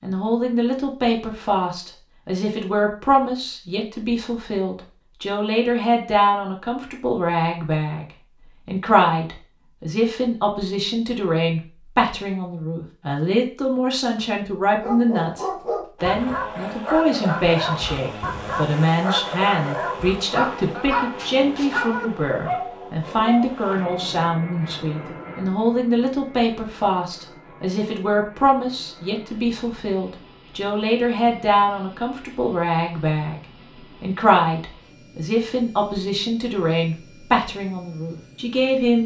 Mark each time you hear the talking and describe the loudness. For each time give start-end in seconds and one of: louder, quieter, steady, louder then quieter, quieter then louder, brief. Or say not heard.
0.0-39.0 steady.